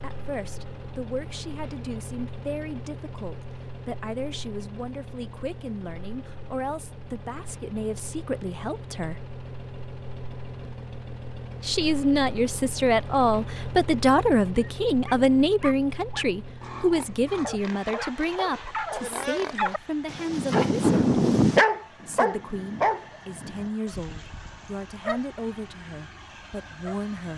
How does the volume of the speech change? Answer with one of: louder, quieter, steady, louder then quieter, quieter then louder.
louder then quieter.